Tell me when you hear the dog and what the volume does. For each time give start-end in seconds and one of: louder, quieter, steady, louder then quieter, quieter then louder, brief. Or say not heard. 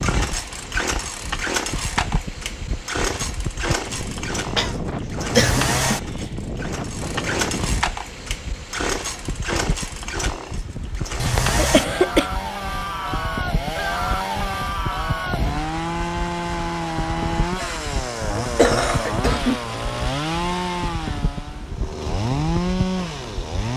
not heard.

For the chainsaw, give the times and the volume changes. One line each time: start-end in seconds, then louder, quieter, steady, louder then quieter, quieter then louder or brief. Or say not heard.
0.0-23.7 steady.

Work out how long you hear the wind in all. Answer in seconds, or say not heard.
24 s.